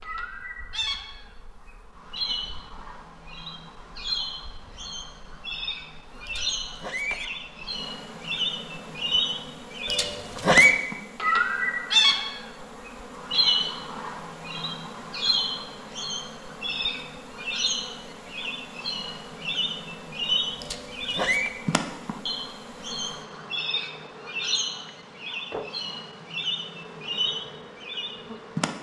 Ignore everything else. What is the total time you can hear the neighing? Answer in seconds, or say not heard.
3 s.